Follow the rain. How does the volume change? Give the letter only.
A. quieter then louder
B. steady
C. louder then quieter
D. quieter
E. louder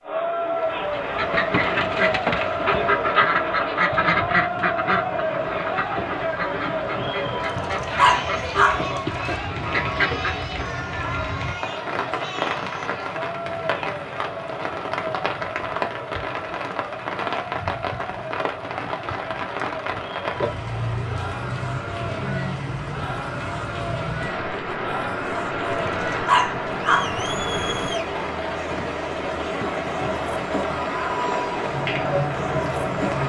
E.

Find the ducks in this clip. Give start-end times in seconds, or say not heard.
0.9-10.4.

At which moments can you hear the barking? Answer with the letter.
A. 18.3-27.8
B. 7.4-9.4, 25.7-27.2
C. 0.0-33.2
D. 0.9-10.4
B.